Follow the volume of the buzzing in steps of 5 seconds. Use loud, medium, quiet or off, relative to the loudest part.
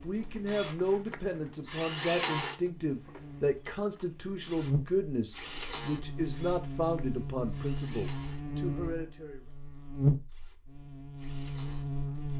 medium, medium, loud.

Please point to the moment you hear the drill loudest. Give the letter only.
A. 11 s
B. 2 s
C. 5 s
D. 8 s
B.